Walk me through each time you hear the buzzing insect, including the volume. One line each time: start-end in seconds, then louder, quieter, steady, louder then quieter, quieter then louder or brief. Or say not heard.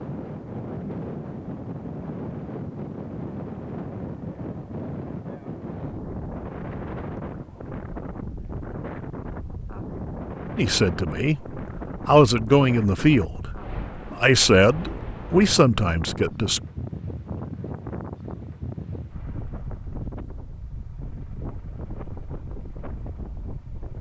not heard.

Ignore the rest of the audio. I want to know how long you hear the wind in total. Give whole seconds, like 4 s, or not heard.
24 s.